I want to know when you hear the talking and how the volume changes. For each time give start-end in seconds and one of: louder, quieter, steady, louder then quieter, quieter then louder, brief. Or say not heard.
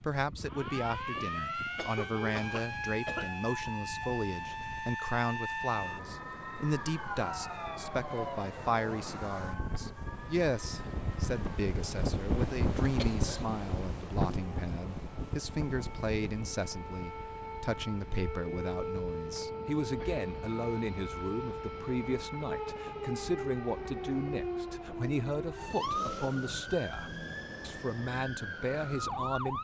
0.0-29.6 steady.